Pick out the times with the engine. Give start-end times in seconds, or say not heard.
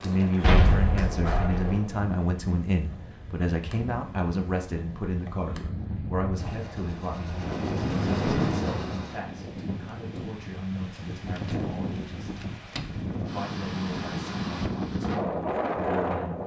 6.3-9.2.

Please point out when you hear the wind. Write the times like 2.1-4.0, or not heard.
0.0-16.4.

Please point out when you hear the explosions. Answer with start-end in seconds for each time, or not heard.
0.4-1.6.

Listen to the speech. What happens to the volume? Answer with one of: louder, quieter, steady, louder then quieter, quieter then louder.
quieter.